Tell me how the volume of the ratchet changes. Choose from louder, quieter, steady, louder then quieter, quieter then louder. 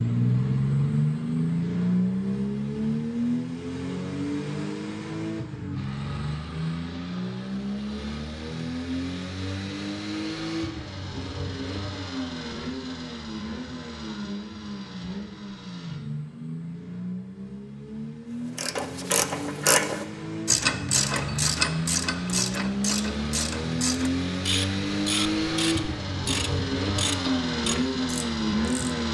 quieter.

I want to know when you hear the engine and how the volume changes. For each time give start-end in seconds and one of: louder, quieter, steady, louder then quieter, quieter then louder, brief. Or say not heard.
0.0-29.0 quieter then louder.